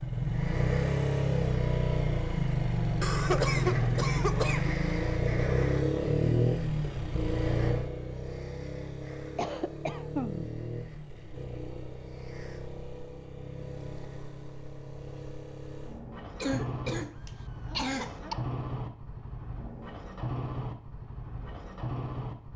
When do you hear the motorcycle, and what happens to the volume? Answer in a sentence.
The motorcycle can be heard from 0.0 to 22.5 s, getting quieter.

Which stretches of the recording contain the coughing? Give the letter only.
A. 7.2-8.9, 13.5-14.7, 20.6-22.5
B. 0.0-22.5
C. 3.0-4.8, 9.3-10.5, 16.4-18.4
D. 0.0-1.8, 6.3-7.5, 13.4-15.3
C.